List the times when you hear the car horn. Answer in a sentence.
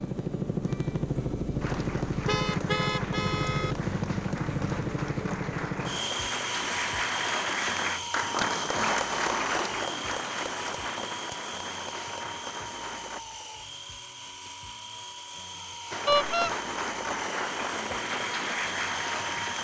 You can hear the car horn from 2.2 to 3.8 s and from 16.1 to 16.6 s.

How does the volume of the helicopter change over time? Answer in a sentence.
The loudness of the helicopter goes down.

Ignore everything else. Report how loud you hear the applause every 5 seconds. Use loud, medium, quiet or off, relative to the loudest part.
medium, loud, medium, loud.